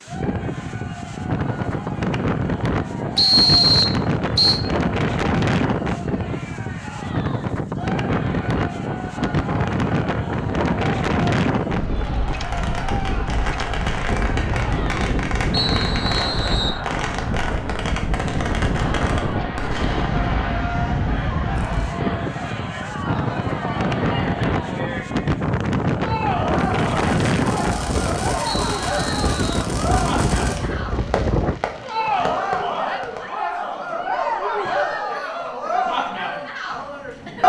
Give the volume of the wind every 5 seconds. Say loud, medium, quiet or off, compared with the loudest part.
loud, loud, loud, loud, loud, loud, loud, off.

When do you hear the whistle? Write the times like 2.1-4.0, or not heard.
3.1-4.6, 15.5-16.8, 28.4-29.6.